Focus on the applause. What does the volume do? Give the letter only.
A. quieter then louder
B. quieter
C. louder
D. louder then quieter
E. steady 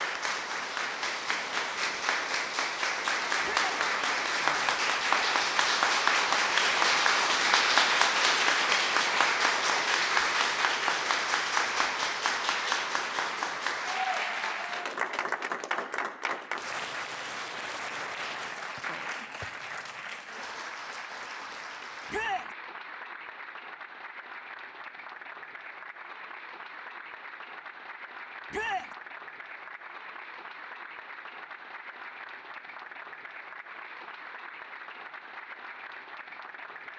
B.